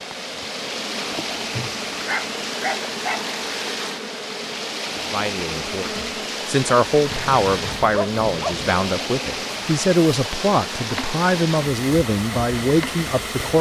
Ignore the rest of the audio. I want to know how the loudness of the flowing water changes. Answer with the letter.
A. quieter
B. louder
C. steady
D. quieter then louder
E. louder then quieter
C.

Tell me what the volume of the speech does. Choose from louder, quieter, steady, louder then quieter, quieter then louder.
steady.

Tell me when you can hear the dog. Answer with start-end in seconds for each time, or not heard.
1.5-3.4, 7.1-8.7.